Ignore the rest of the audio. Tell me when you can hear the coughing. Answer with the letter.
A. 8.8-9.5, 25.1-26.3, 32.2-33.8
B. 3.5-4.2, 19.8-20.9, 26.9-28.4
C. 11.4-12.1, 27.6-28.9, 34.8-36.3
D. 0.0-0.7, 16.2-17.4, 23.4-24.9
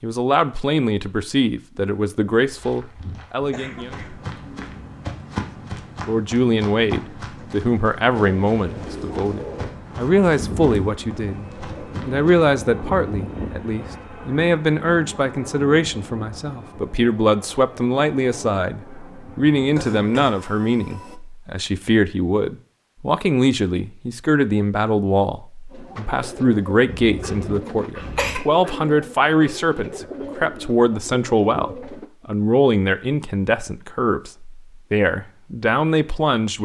B.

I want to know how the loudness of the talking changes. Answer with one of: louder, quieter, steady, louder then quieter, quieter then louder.
steady.